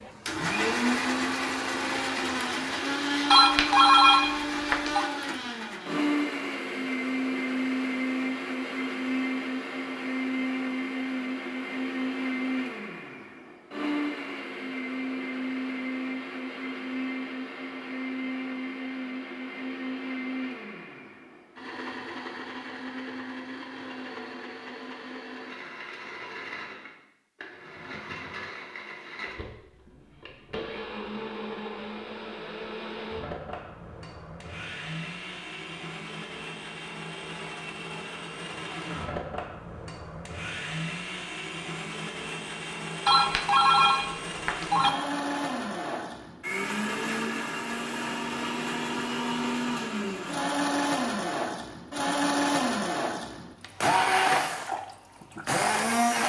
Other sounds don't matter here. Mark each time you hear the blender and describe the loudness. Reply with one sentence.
The blender can be heard from 0.0 to 56.2 s, getting quieter then louder.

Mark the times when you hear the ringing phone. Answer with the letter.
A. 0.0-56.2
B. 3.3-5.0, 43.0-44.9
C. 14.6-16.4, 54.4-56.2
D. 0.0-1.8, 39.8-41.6
B.